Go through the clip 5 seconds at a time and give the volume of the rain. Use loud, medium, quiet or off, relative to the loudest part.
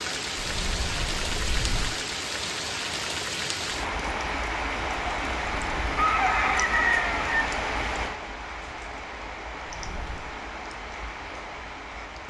loud, loud, medium.